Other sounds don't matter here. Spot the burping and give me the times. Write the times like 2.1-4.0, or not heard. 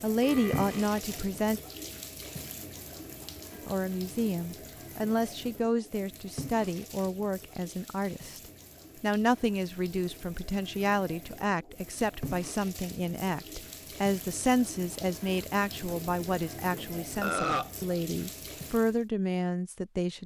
0.2-0.9, 17.2-17.7.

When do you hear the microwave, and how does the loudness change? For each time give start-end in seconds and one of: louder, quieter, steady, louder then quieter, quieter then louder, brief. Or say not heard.
not heard.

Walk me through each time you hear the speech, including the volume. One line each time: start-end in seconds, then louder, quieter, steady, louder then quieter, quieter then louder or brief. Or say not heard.
0.0-1.6 brief
3.6-20.2 steady.